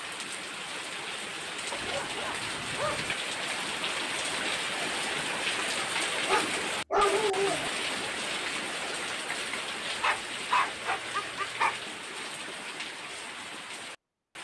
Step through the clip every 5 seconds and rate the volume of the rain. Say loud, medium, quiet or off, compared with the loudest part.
loud, loud, medium.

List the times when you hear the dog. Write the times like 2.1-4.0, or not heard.
1.7-3.1, 6.2-7.7, 9.8-11.8.